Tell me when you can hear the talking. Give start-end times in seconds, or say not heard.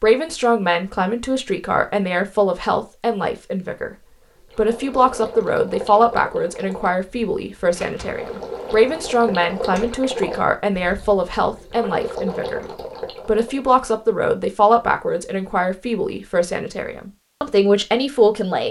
0.0-4.0, 4.5-12.7, 13.2-18.6.